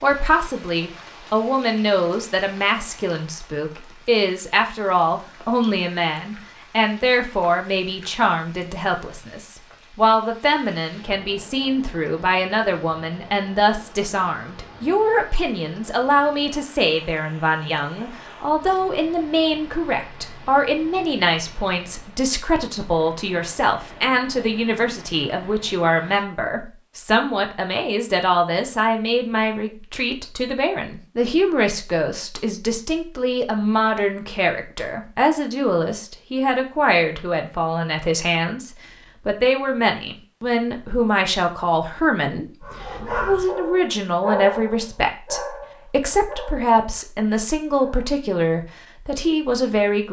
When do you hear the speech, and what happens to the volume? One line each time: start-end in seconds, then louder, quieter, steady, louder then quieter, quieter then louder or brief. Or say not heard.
0.0-50.0 steady.